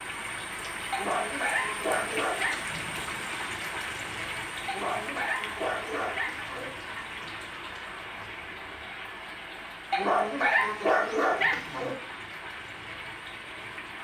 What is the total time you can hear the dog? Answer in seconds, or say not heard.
6 s.